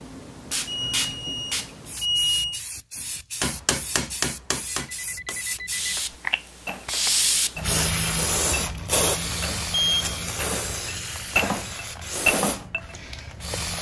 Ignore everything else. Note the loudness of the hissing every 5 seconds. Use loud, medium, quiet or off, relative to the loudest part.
medium, loud, medium.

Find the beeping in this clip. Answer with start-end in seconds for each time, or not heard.
0.7-2.6, 4.8-6.0, 9.7-10.2.